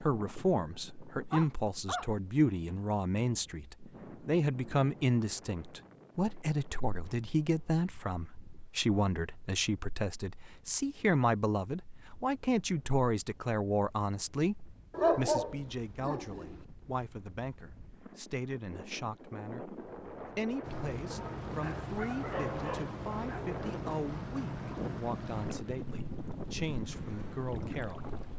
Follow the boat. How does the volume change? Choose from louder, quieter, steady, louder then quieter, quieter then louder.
quieter.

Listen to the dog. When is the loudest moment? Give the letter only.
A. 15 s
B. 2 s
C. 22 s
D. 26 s
A.